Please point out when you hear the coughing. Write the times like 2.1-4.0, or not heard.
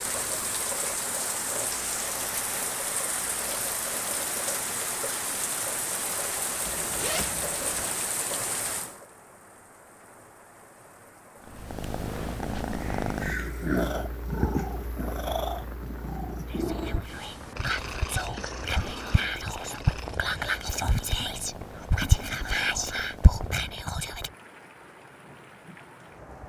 not heard.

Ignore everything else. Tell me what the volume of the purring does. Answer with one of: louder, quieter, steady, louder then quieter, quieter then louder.
quieter.